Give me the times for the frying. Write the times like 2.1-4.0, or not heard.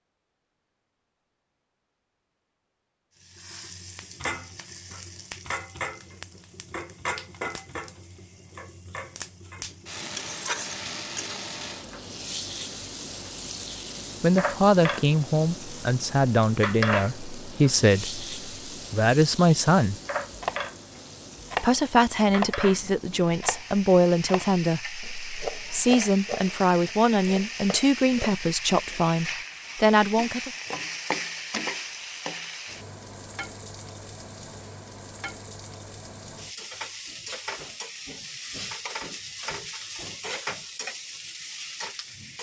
3.2-42.3.